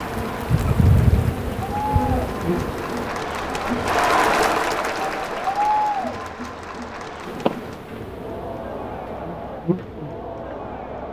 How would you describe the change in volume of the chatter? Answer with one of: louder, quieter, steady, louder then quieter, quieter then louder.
louder then quieter.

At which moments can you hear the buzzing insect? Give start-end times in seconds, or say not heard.
0.0-3.1, 7.2-11.0.